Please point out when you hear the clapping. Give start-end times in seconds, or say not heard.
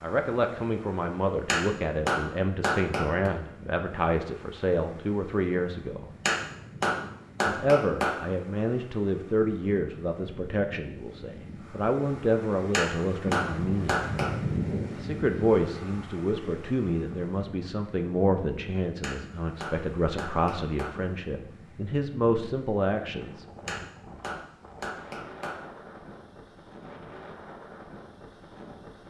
1.4-3.3, 6.2-8.2, 12.7-14.3, 19.0-20.9, 23.6-25.6.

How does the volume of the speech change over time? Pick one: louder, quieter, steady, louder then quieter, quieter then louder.
steady.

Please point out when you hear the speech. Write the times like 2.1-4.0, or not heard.
0.0-6.0, 7.5-14.1, 14.9-23.8.